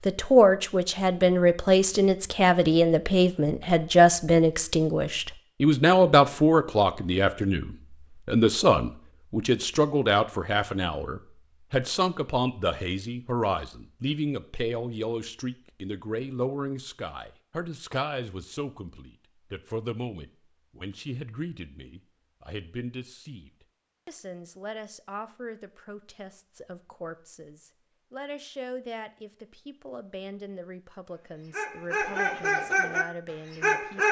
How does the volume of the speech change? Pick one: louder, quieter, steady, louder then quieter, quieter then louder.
quieter.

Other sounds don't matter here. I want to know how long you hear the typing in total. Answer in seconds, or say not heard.
not heard.